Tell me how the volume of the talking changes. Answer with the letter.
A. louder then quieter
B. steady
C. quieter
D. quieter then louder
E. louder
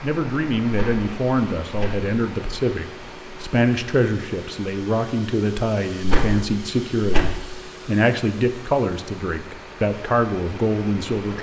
B.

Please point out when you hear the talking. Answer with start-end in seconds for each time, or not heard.
0.0-11.3.